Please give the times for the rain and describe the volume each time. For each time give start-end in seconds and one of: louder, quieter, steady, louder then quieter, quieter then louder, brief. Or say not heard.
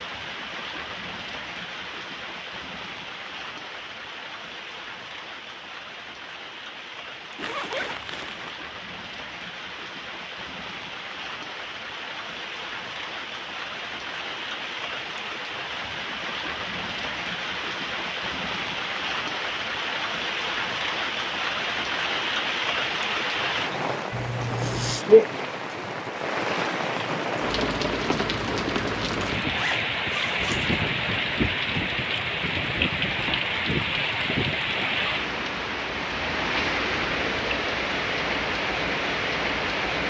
0.0-40.0 louder.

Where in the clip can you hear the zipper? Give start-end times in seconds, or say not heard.
7.3-8.6, 24.1-25.1, 29.4-30.8.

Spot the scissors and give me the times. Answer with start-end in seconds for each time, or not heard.
not heard.